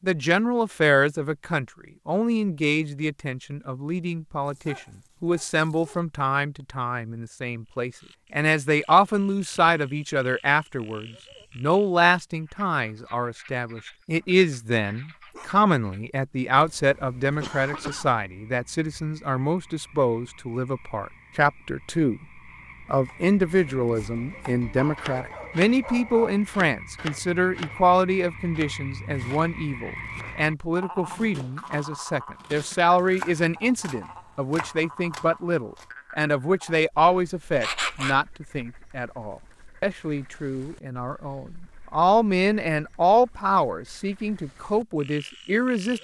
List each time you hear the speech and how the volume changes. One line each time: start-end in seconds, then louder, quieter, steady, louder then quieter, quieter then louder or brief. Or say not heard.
0.0-22.2 steady
22.9-45.9 steady.